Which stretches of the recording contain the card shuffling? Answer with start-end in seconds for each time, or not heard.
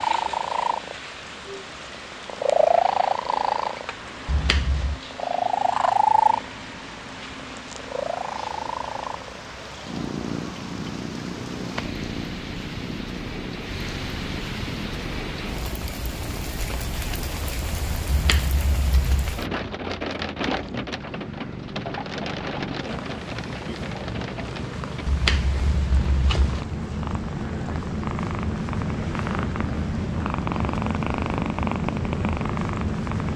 4.2-5.0, 18.1-19.3, 25.1-26.6.